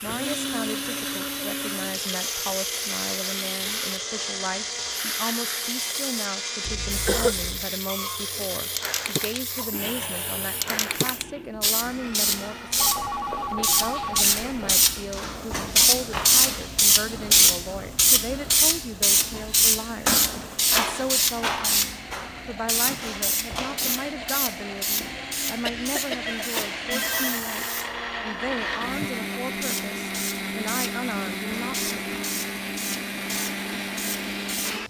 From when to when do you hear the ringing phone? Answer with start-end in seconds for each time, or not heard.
12.8-14.8, 26.2-27.4.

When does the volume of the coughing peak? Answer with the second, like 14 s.
7 s.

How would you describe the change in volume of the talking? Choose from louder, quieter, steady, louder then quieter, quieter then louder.
steady.